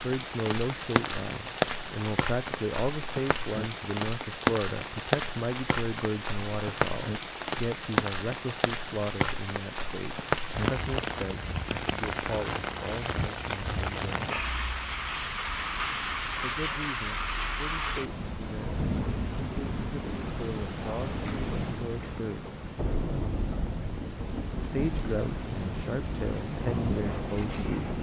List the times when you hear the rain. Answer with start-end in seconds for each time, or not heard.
0.0-27.9.